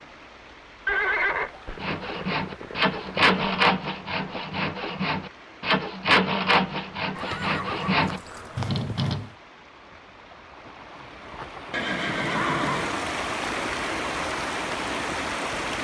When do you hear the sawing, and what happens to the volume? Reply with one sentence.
You can hear the sawing from 1.8 to 9.3 s, at a steady volume.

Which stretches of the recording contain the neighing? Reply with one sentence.
You can hear the neighing from 0.8 to 3.4 s, from 7.2 to 9.0 s and from 11.7 to 12.9 s.